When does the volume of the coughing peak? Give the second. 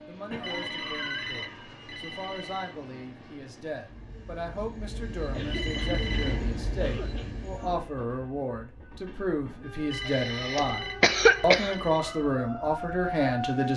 11 s.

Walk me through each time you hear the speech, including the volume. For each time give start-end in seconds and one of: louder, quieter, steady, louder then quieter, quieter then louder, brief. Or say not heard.
0.1-13.7 louder.